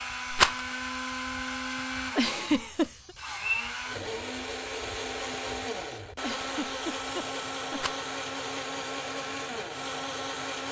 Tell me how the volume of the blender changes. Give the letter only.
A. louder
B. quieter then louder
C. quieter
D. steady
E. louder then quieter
D.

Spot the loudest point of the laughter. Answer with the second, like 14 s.
3 s.